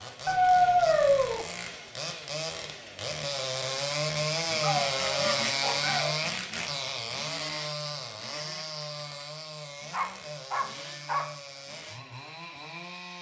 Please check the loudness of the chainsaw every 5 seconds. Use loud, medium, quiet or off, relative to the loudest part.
loud, loud, medium.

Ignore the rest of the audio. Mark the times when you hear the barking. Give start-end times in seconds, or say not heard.
0.2-1.4, 4.6-6.2, 9.9-11.3.